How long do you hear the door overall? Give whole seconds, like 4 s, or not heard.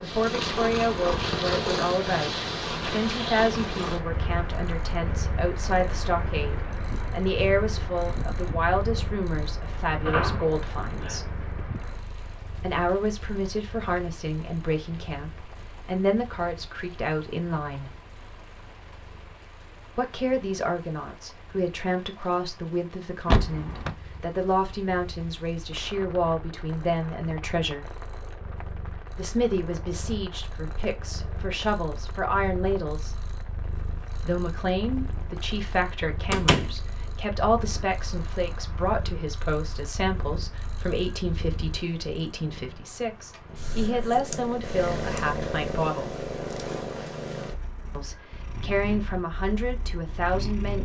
2 s.